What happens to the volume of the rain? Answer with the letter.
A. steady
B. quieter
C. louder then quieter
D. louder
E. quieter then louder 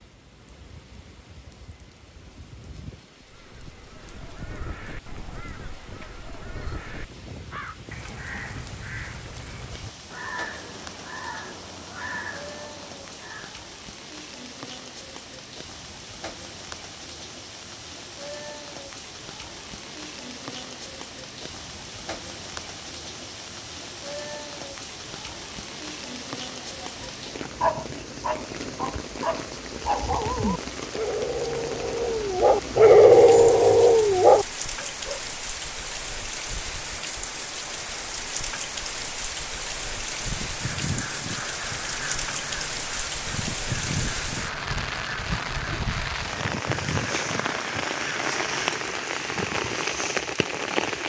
D.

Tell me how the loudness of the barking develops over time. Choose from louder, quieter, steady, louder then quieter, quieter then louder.
louder.